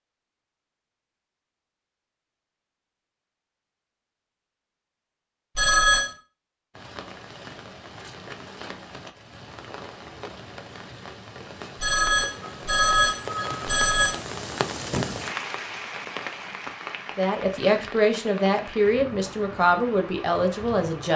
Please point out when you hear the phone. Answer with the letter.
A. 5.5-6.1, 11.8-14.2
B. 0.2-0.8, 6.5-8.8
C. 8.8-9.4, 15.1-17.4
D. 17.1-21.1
A.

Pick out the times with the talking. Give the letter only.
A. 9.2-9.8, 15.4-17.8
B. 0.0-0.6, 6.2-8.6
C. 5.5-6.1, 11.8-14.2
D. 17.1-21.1
D.